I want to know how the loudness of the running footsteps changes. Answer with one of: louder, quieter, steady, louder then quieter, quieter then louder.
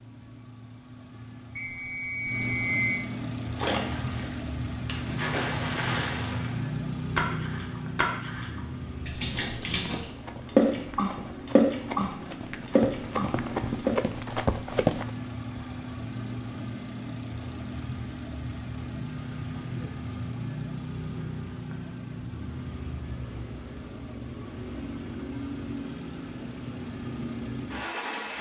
louder.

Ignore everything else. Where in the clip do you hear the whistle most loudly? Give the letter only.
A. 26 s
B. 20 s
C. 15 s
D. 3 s
D.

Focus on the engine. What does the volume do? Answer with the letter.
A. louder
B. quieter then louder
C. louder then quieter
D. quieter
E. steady
E.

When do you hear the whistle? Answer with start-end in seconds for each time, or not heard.
1.6-3.0.